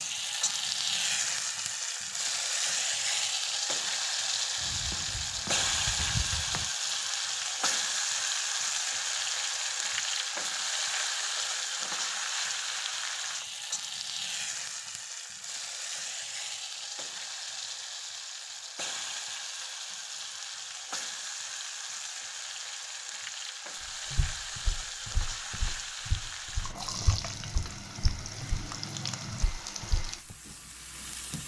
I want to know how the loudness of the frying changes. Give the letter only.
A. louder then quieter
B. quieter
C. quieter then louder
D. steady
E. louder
B.